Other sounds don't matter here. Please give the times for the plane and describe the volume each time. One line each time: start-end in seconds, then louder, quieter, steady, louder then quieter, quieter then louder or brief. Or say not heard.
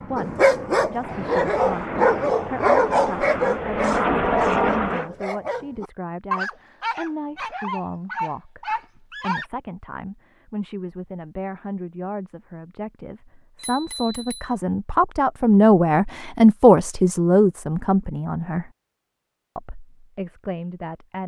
0.0-5.1 louder.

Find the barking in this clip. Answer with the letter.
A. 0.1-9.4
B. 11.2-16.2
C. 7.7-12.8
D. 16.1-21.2
A.